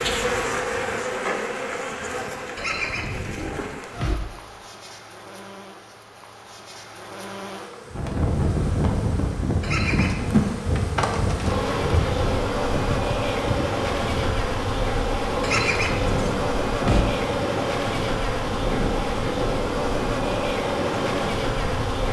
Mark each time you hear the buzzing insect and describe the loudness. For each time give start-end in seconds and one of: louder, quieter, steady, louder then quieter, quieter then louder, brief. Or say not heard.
0.0-22.0 quieter then louder.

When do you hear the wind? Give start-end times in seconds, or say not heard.
7.9-22.0.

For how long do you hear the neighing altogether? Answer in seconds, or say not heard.
4 s.